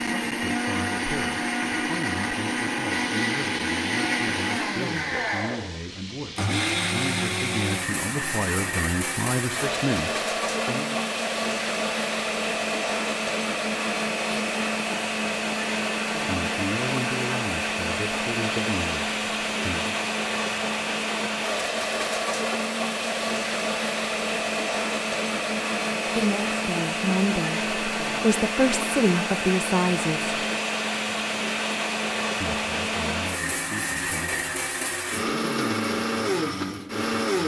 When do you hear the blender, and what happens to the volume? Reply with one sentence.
You can hear the blender from 0.0 to 37.4 s, at a steady volume.